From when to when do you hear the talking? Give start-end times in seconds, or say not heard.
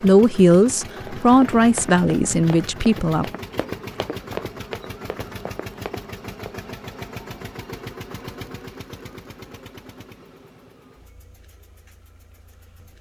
0.0-3.2.